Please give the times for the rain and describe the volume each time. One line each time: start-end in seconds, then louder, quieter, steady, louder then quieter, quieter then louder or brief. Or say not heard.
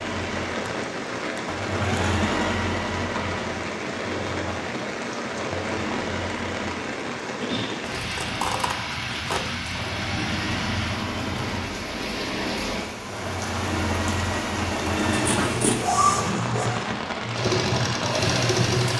0.0-18.9 steady.